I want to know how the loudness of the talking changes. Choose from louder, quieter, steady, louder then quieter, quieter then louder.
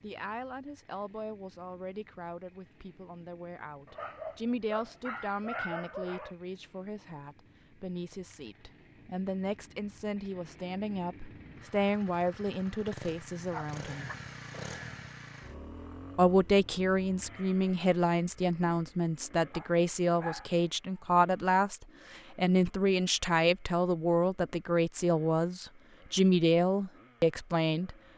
louder.